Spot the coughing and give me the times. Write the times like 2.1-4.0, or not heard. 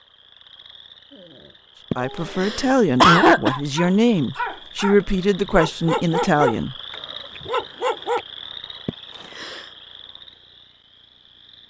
1.9-3.6, 8.8-9.7.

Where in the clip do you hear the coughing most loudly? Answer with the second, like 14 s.
3 s.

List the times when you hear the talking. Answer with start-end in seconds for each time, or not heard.
1.9-6.8.